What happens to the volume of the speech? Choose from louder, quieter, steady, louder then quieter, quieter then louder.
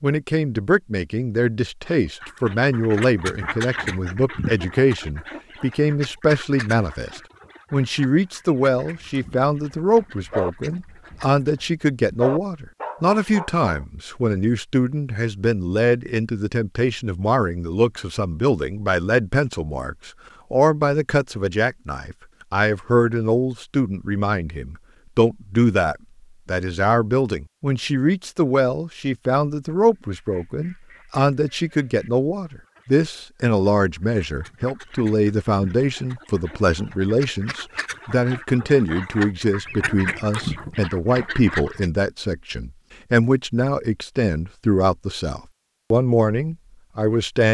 steady.